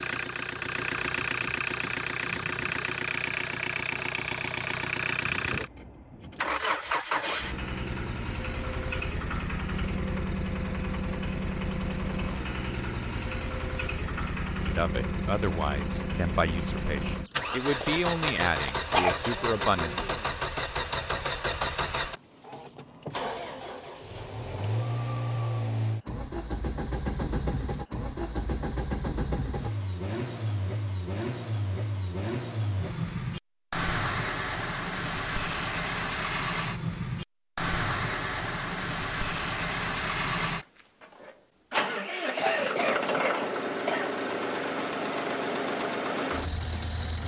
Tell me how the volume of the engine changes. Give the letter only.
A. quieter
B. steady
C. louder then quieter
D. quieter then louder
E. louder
B.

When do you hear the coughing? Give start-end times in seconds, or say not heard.
17.8-19.3, 42.1-44.1.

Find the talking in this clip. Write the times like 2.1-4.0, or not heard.
14.7-20.1.